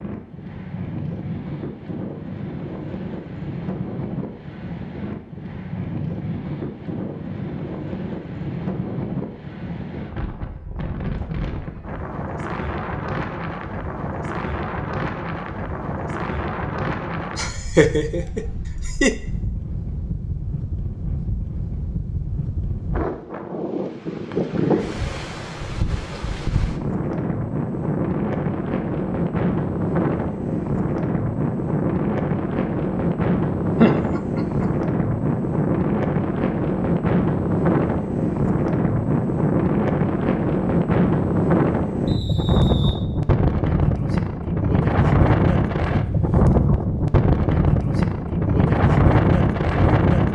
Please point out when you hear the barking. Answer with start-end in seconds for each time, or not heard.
not heard.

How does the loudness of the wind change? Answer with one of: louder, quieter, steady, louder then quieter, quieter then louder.
louder.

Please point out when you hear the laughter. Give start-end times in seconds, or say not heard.
17.4-19.1, 33.8-34.7.